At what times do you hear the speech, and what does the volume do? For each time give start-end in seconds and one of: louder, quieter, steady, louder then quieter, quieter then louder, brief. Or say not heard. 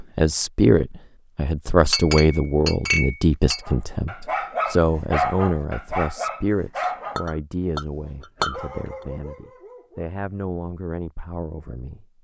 0.0-12.1 quieter.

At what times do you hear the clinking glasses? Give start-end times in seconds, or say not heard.
1.9-3.6, 6.8-8.6.